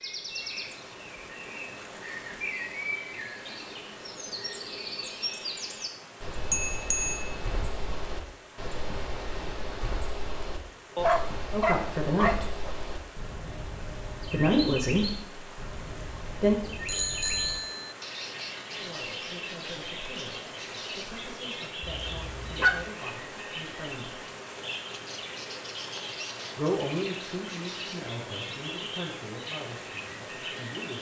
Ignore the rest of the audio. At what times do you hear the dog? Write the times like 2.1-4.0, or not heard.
10.9-12.8, 22.1-22.9.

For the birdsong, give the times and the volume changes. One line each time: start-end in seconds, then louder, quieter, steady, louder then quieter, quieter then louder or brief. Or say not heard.
0.0-30.9 steady.